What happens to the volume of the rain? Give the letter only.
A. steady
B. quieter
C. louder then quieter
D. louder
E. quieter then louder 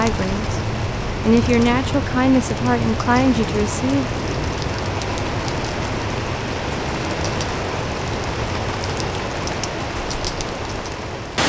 A.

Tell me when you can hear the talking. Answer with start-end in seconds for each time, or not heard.
0.0-0.6, 1.2-4.0.